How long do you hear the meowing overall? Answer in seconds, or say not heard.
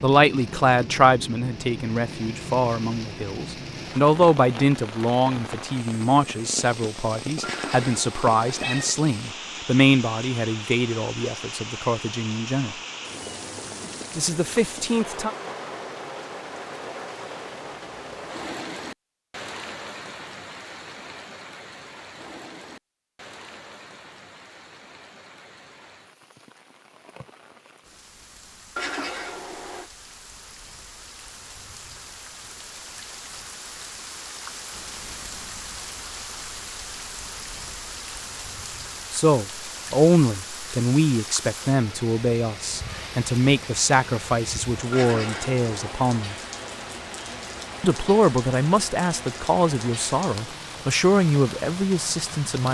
4 s.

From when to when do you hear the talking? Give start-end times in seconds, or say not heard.
0.0-12.8, 14.2-15.3, 39.1-46.4, 47.8-52.6.